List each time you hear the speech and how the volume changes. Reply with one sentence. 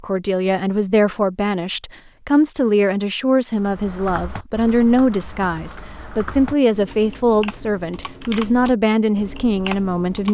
The speech can be heard from 0.0 to 10.3 s, at a steady volume.